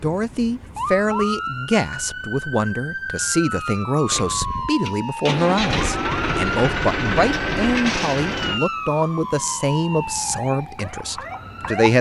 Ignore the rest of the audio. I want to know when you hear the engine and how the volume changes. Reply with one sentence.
The engine can be heard from 4.0 to 8.6 s, getting louder.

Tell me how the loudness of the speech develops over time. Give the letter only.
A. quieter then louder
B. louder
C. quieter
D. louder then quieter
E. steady
E.